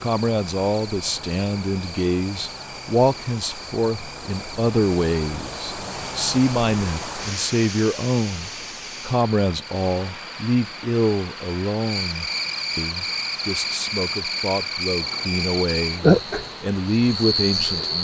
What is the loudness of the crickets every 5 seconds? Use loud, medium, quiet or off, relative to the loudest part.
quiet, quiet, medium, loud.